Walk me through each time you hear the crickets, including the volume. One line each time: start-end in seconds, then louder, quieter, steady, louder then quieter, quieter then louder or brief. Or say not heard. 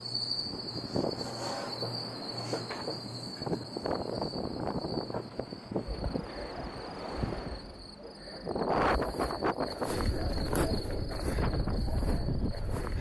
0.0-12.9 quieter then louder.